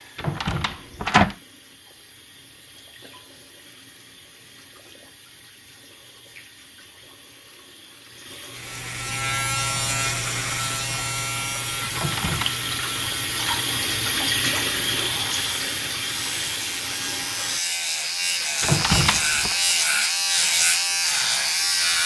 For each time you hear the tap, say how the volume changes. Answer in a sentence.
The tap can be heard from 0.0 to 17.6 s, getting louder.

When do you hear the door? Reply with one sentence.
The door can be heard from 0.1 to 1.4 s, from 11.9 to 12.5 s and from 18.6 to 19.6 s.